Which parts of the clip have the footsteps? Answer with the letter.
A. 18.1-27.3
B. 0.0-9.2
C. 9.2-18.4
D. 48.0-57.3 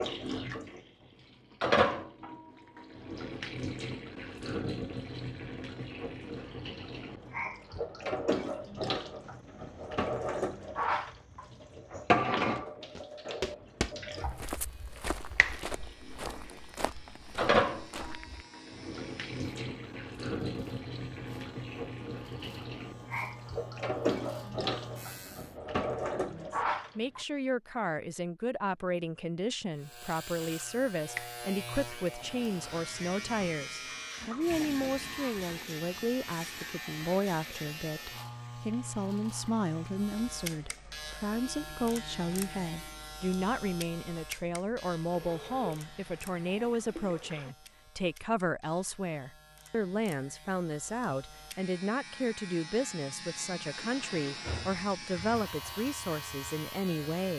C.